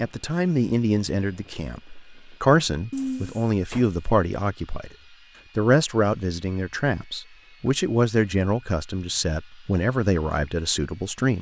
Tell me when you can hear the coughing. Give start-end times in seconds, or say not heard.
2.9-3.9.